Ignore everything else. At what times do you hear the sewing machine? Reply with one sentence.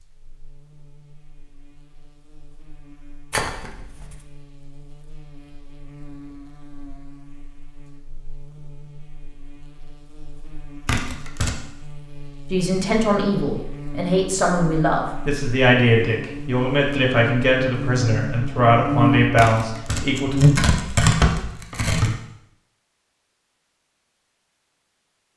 The sewing machine can't be heard in this clip.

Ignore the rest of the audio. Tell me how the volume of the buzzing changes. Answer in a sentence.
The volume of the buzzing goes up.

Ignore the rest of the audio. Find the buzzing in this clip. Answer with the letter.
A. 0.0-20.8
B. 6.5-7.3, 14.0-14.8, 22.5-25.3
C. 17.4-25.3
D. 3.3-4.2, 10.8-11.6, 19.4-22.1
A.